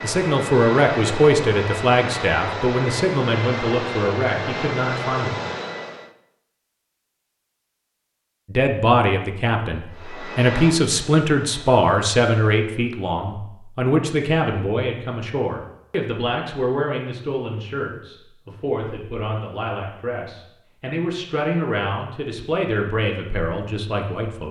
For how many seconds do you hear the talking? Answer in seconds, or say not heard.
21 s.